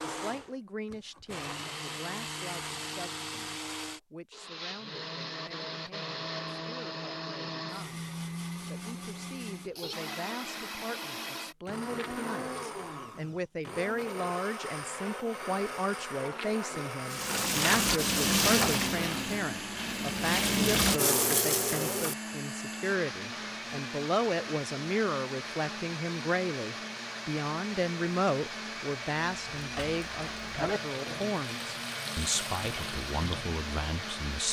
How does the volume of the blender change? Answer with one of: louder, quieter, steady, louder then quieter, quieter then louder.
steady.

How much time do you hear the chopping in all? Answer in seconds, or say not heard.
not heard.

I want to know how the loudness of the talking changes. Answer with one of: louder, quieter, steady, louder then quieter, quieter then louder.
louder.